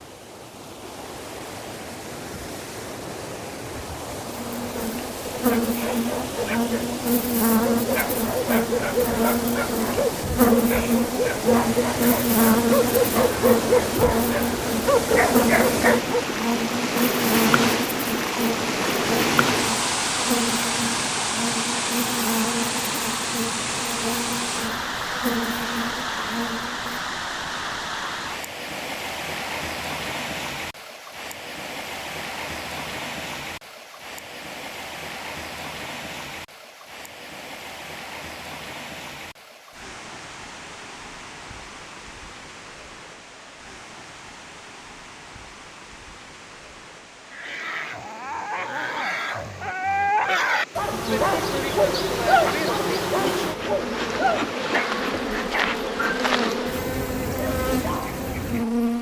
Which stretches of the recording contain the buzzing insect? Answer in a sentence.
You can hear the buzzing insect from 4.2 to 27.0 s and from 50.7 to 58.9 s.